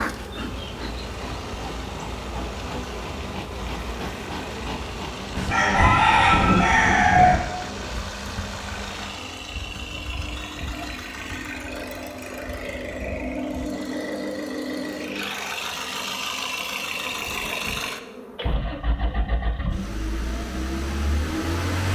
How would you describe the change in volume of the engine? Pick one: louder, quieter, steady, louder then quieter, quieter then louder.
louder.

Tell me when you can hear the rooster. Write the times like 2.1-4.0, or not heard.
5.3-7.4.